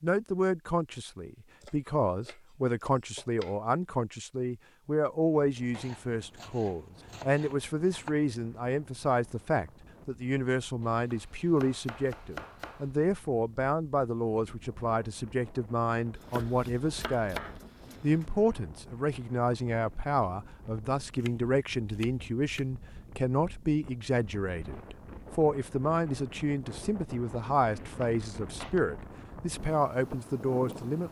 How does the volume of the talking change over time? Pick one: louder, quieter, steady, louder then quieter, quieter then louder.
steady.